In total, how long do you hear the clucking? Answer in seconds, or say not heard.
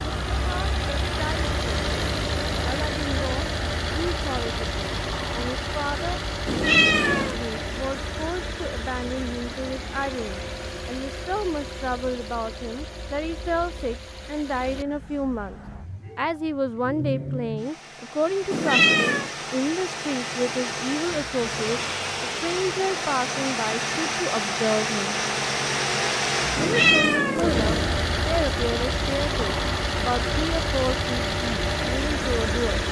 not heard.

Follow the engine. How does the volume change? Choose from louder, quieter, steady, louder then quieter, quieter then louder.
quieter then louder.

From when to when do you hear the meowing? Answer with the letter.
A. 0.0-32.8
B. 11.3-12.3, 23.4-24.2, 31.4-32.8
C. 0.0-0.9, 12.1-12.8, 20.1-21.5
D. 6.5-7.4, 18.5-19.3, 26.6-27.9
D.